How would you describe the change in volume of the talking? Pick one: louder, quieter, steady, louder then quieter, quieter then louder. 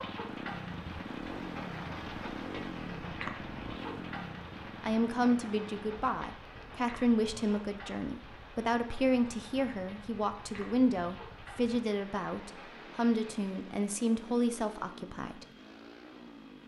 steady.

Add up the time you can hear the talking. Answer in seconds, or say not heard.
11 s.